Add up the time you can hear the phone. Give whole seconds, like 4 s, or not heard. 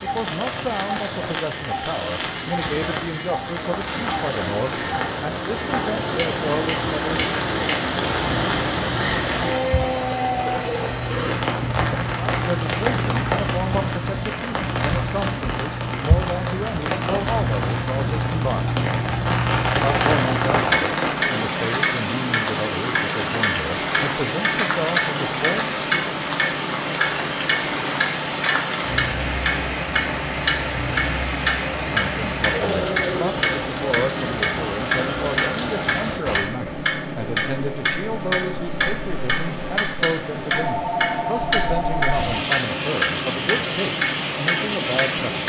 3 s.